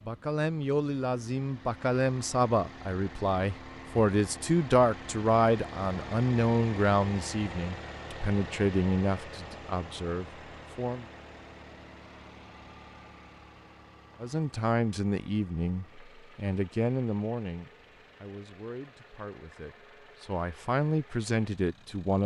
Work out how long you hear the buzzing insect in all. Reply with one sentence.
The buzzing insect can't be heard in this clip.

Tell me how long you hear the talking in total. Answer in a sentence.
The talking can be heard for 19 seconds in total.